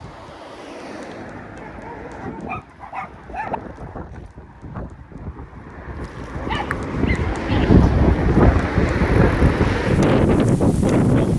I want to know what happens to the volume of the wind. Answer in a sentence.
The loudness of the wind goes up.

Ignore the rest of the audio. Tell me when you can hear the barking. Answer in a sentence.
You can hear the barking from 1.6 to 3.6 s and from 6.5 to 7.7 s.